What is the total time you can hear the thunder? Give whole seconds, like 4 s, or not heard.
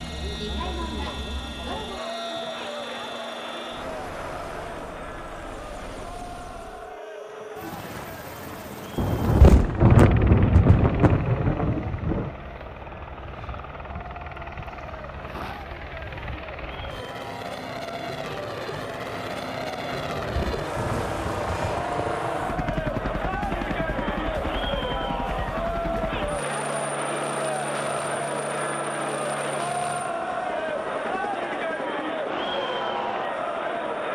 6 s.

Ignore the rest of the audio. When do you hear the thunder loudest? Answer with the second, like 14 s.
10 s.